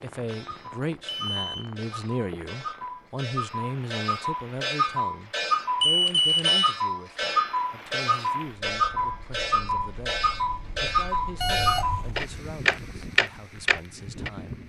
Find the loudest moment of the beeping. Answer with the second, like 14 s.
6 s.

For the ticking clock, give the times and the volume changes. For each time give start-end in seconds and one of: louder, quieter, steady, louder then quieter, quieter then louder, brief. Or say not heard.
0.1-14.6 louder.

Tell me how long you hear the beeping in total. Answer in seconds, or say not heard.
2 s.